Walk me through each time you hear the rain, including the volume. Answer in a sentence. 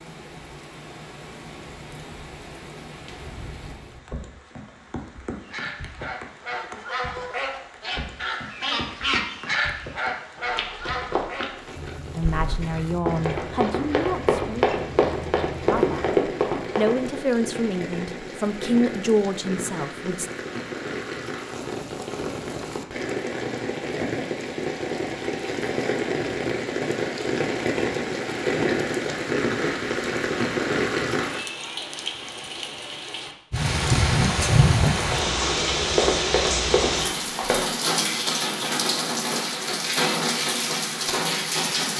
You can hear the rain from 0.0 to 41.9 s, getting louder.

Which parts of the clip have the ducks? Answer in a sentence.
You can hear the ducks from 5.4 to 16.1 s.